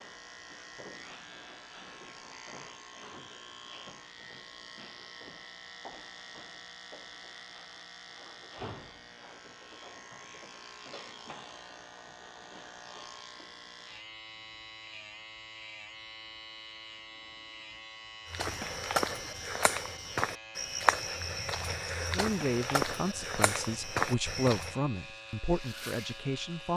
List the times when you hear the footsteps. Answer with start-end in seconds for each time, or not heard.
18.3-24.8.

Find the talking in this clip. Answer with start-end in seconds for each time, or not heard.
22.1-26.7.